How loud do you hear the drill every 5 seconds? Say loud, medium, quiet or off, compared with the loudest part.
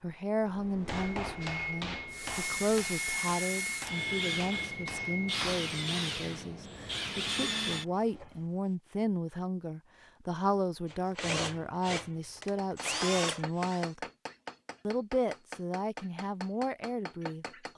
loud, loud, loud, off.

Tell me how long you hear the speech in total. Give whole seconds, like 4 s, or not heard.
17 s.